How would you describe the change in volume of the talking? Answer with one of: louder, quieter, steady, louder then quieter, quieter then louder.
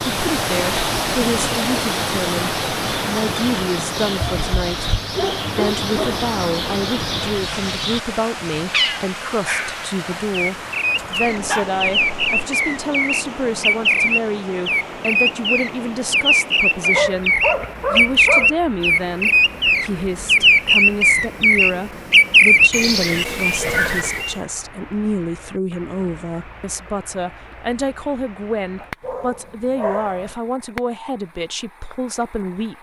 steady.